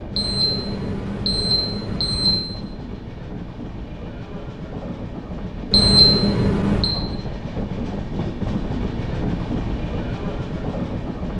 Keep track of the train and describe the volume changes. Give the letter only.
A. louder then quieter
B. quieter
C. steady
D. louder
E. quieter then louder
D.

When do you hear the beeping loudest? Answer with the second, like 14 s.
6 s.